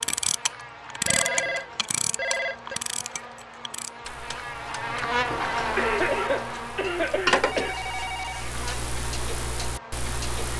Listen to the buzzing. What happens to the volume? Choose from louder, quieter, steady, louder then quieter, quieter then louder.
louder then quieter.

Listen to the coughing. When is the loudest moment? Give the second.
6 s.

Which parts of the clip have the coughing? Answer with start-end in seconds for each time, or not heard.
5.8-7.8.